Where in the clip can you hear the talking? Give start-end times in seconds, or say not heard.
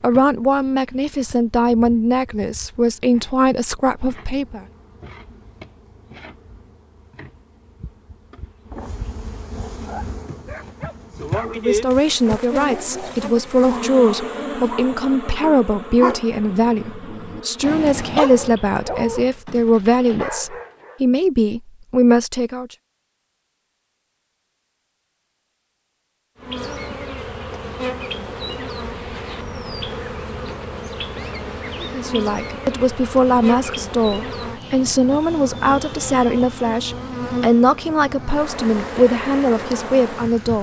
0.0-4.6, 11.4-22.7, 31.8-40.5.